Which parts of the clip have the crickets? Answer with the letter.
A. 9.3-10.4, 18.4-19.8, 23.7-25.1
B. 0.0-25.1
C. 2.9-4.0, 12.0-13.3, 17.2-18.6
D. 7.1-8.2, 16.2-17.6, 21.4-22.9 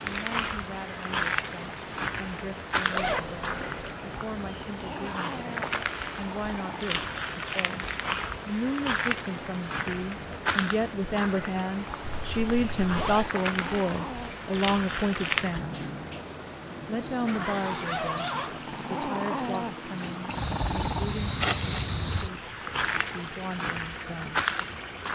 B.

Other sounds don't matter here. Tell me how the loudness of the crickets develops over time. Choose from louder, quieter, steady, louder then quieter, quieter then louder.
steady.